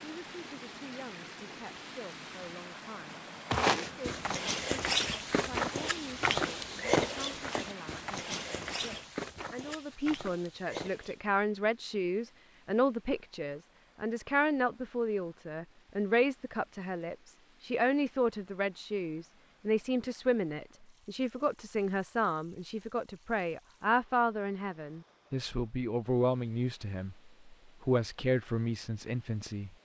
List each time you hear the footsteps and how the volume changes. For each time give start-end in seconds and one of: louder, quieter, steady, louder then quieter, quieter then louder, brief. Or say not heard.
3.5-11.2 quieter.